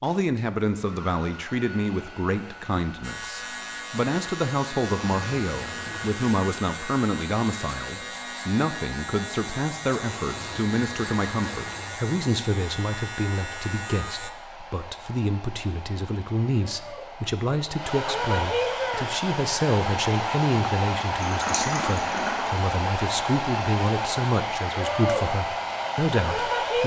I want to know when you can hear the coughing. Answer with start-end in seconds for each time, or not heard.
not heard.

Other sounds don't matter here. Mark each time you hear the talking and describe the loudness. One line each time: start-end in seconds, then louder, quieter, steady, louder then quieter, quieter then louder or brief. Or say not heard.
0.0-26.8 steady.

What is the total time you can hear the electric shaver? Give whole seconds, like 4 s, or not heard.
11 s.